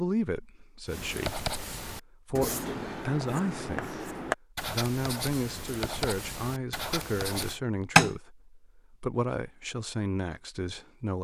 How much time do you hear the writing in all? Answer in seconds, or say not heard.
7 s.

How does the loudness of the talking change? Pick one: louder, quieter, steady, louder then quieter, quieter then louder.
steady.